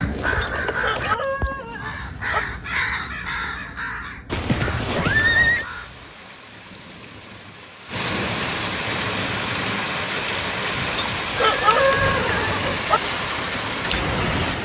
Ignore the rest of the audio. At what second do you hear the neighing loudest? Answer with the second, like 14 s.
5 s.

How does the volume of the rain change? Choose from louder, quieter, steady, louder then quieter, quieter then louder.
louder.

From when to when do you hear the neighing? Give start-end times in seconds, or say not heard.
4.3-5.7, 11.3-12.8.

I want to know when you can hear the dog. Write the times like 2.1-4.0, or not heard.
0.4-2.4, 10.9-13.0.